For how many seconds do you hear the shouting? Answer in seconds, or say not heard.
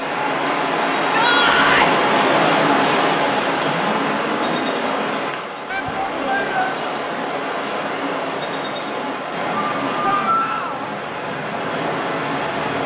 3 s.